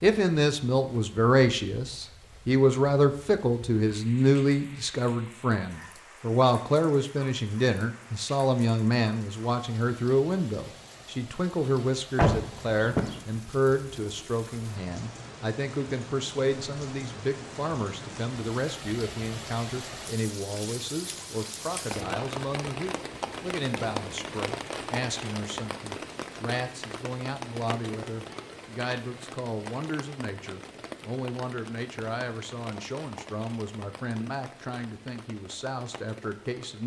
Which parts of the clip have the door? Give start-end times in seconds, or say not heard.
12.2-13.2.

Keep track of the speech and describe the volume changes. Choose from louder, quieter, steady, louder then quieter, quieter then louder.
quieter.